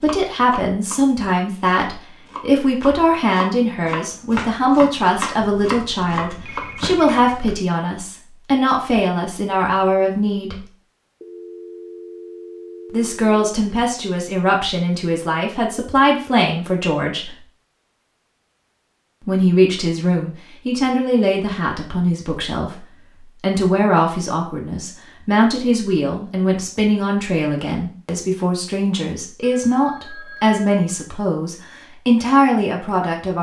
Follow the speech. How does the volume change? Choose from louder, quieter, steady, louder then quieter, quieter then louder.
steady.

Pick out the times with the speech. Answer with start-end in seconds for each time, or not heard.
0.0-10.7, 12.9-17.4, 19.2-33.3.